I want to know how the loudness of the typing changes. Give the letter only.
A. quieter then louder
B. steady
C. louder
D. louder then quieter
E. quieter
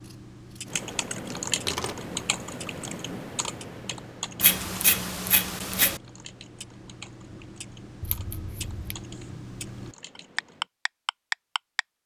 E.